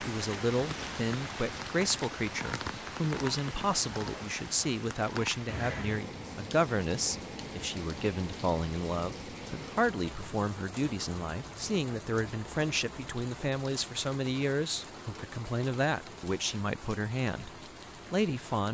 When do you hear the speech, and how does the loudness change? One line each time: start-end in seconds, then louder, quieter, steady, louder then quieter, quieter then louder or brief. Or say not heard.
0.1-17.5 steady
18.1-18.6 brief.